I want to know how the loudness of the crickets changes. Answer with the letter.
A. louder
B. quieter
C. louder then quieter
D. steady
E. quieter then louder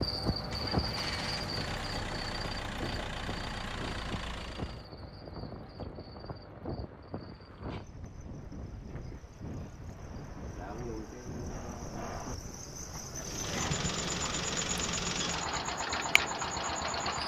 E.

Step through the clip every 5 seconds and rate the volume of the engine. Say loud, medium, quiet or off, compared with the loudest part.
medium, off, loud, loud.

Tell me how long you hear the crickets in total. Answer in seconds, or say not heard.
17 s.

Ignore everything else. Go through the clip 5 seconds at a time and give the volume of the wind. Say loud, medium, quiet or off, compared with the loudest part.
loud, medium, medium, medium.